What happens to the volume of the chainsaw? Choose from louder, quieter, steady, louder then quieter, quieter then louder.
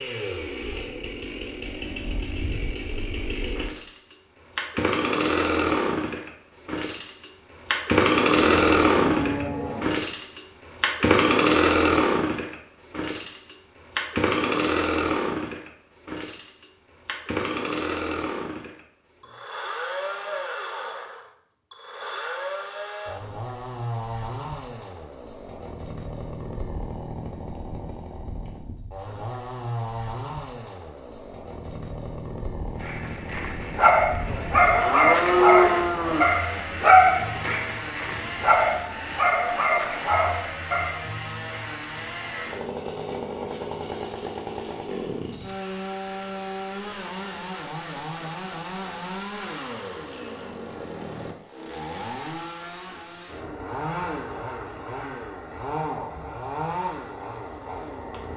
quieter.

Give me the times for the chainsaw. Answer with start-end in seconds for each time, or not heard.
0.0-58.3.